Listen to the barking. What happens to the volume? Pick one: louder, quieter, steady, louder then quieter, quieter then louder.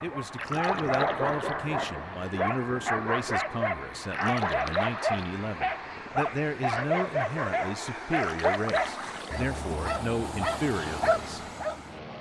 steady.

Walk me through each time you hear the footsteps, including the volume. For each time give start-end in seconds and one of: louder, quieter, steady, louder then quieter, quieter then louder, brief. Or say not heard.
not heard.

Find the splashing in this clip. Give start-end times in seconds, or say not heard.
0.3-1.6, 4.1-5.3, 8.1-9.3.